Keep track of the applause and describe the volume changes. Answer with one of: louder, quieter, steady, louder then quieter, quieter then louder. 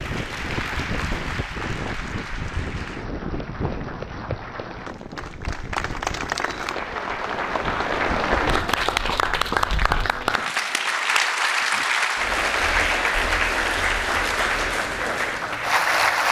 louder.